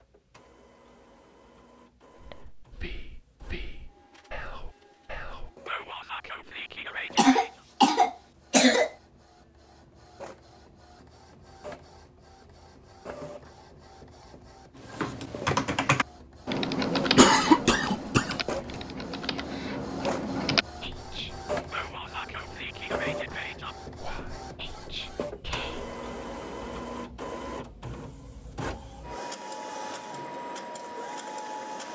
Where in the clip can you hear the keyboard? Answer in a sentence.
The keyboard can be heard from 14.8 to 20.6 s.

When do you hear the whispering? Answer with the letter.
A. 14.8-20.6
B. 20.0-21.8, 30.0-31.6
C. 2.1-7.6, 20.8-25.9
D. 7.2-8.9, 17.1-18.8
C.